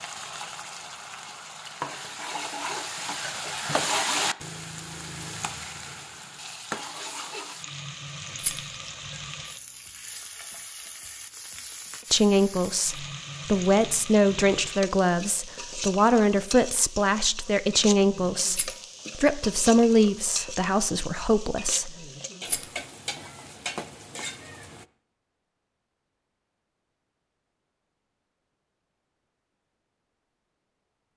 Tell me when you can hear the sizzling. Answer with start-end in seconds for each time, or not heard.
0.0-24.9.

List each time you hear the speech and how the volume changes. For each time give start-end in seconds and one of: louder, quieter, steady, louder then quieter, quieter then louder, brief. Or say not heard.
12.1-22.1 steady.